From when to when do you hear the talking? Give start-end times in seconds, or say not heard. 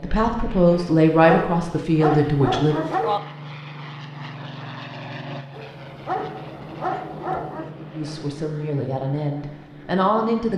0.0-2.8, 7.9-10.5.